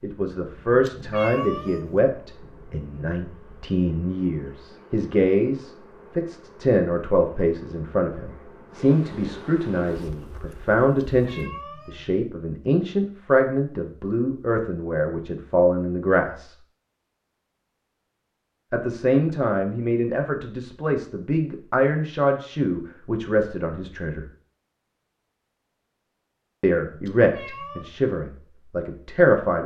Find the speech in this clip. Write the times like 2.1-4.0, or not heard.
0.0-16.6, 18.7-24.2, 26.6-29.6.